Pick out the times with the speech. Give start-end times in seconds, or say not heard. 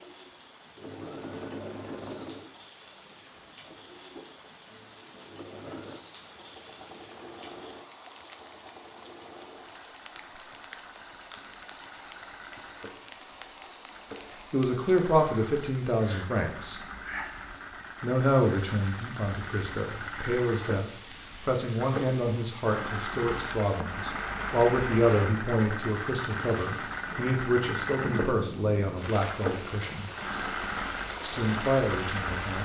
14.5-16.8, 18.0-30.1, 31.2-32.5.